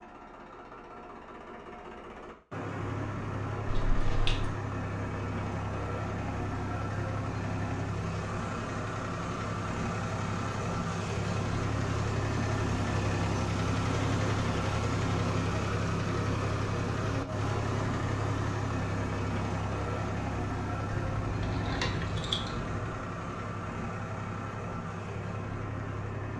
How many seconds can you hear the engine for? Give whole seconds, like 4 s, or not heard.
26 s.